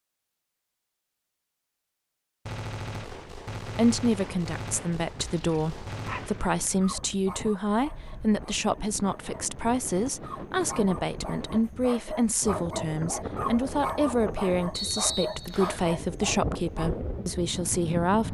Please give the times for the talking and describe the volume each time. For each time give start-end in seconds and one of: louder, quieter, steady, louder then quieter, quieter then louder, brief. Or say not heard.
3.8-18.2 steady.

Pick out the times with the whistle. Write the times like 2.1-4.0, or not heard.
14.7-15.8.